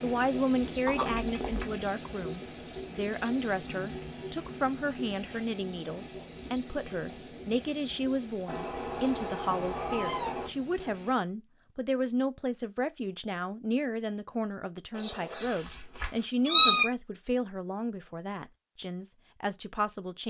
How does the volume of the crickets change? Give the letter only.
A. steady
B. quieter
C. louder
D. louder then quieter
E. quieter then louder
B.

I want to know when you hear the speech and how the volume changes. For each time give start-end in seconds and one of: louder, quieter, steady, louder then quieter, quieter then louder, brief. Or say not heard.
0.0-20.2 steady.